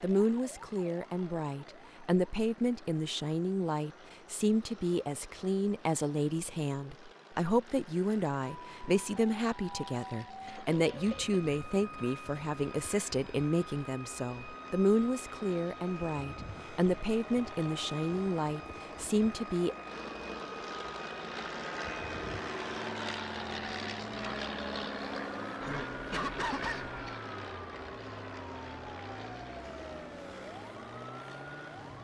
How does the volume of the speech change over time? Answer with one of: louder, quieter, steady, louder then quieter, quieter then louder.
steady.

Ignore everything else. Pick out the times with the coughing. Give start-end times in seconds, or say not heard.
10.4-12.4, 25.6-27.2.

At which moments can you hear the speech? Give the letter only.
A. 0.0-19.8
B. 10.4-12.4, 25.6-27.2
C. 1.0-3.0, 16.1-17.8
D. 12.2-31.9
A.